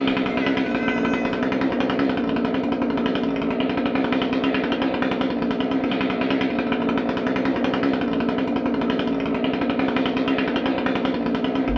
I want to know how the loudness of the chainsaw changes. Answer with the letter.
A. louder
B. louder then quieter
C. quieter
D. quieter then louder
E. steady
E.